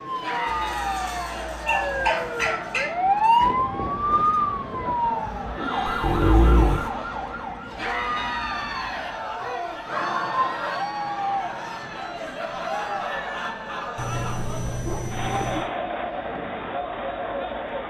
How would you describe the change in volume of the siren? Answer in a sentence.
The loudness of the siren goes up, then down.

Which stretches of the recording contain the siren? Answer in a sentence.
You can hear the siren from 0.0 to 7.9 s.